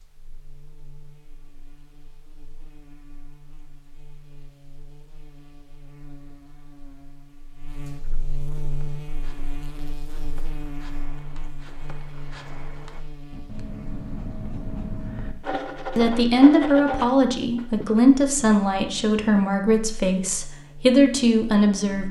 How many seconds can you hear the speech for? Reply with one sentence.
The speech can be heard for 6 seconds in total.